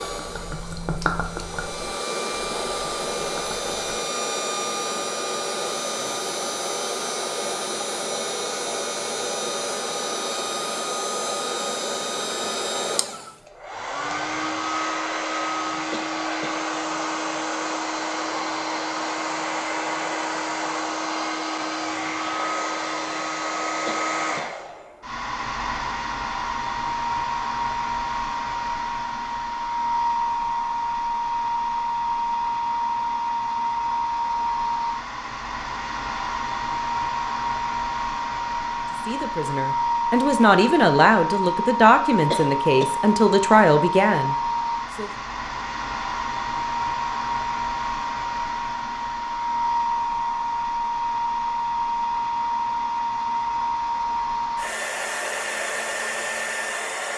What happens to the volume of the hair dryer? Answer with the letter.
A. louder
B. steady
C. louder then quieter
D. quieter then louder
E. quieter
B.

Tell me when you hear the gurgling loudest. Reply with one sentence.
The volume of the gurgling peaks at 1 second.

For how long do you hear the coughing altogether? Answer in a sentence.
You can hear the coughing for 2 seconds altogether.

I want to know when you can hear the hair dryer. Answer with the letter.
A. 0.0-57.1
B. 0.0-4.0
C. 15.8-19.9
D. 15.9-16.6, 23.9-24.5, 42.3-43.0
A.